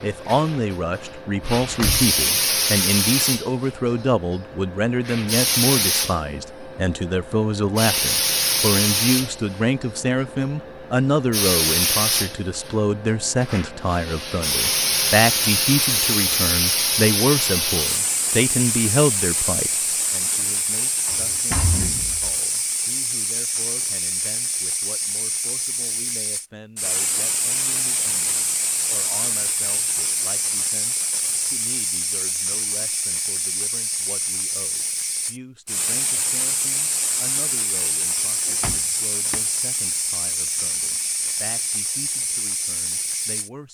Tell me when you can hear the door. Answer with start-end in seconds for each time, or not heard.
1.6-2.1, 21.1-22.2, 38.5-39.4.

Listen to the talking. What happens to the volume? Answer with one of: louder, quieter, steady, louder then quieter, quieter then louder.
quieter.